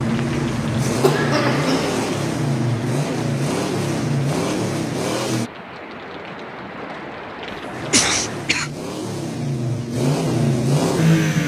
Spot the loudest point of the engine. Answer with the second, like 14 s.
11 s.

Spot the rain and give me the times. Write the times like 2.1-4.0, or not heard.
0.0-8.7.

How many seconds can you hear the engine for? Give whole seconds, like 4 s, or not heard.
9 s.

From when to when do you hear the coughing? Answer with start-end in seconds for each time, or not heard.
0.8-2.1, 7.5-8.8.